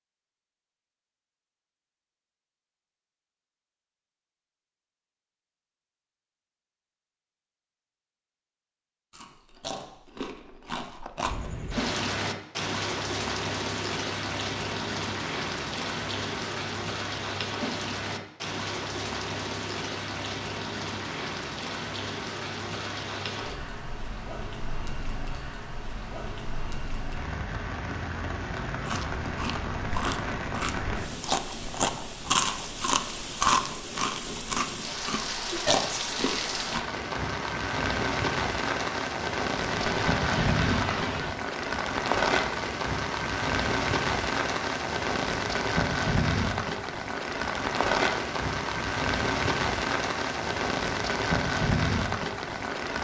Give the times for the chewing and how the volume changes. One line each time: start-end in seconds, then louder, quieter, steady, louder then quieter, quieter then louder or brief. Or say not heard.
9.1-11.5 brief
28.9-36.9 louder then quieter.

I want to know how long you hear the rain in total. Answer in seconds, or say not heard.
42 s.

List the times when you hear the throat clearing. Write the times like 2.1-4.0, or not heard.
39.6-41.4.